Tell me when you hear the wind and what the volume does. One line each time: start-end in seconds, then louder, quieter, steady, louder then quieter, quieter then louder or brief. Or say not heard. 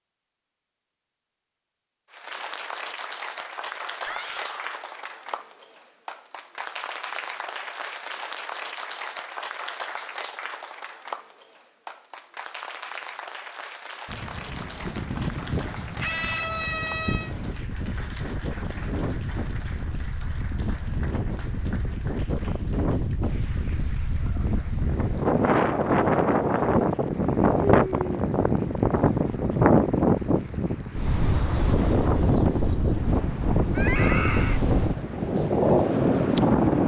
14.1-36.8 louder.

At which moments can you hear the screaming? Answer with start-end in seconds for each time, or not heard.
4.0-4.8, 16.0-17.4, 33.8-34.6.